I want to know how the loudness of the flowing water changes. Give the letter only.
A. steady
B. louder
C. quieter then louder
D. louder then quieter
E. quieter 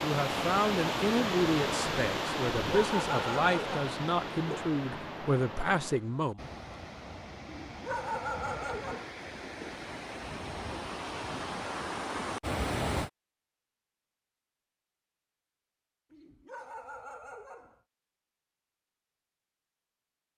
C.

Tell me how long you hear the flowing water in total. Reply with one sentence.
The flowing water can be heard for 13 seconds in total.